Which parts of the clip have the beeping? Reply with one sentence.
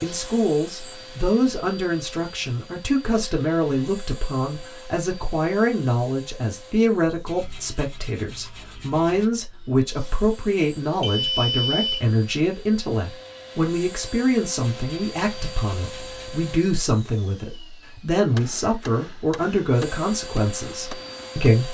The beeping can be heard from 11.0 to 12.1 s.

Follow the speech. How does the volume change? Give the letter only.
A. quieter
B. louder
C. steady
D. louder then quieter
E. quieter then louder
C.